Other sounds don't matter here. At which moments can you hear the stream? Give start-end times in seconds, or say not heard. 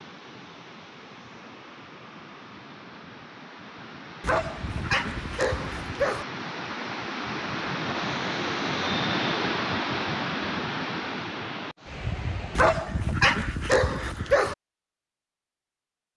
0.0-12.7.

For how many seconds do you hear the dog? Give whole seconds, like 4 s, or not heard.
4 s.